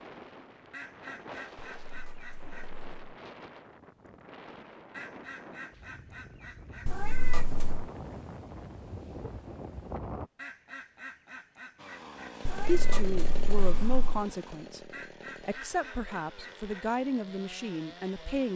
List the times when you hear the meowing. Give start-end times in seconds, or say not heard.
1.6-3.1, 6.8-7.8, 12.4-14.2.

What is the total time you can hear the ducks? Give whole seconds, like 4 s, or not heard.
8 s.